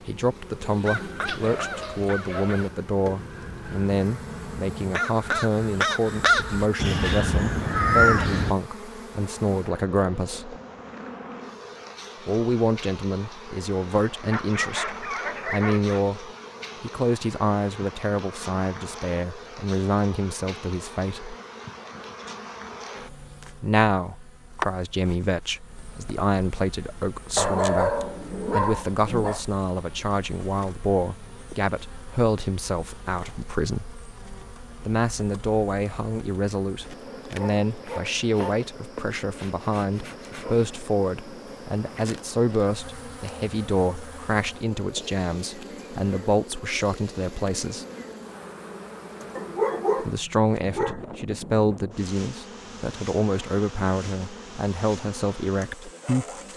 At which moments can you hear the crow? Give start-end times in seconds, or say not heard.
0.8-8.6.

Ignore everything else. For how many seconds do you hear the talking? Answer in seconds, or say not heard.
49 s.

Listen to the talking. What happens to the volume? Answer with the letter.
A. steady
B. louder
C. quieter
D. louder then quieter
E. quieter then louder
A.